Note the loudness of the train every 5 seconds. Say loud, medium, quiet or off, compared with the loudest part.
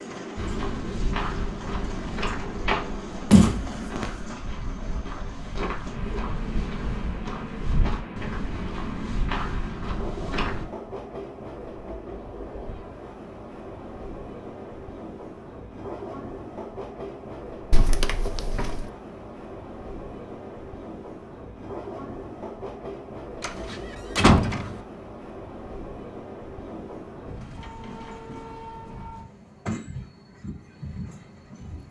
loud, loud, loud, loud, loud, loud, medium.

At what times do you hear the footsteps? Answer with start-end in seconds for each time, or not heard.
0.3-10.7.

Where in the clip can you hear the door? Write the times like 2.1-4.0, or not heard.
3.3-4.1, 17.7-18.9, 23.4-24.8.